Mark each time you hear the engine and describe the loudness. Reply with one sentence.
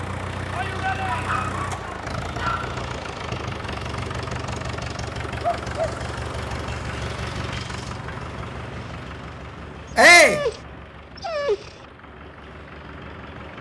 You can hear the engine from 0.0 to 13.5 s, getting quieter.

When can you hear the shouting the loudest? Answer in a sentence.
The loudest moment of the shouting is at 10 seconds.